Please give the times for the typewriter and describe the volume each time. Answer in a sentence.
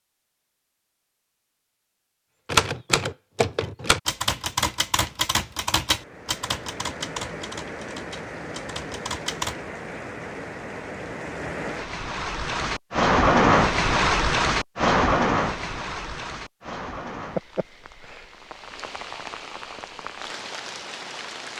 The typewriter can be heard from 2.5 to 9.6 s, getting quieter.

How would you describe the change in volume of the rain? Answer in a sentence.
The loudness of the rain goes up, then down.